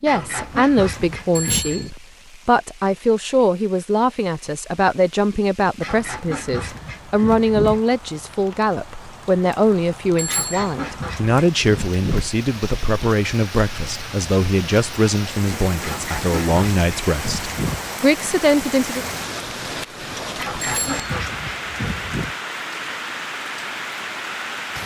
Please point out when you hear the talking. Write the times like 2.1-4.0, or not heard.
0.0-19.1.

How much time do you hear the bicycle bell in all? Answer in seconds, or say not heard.
2 s.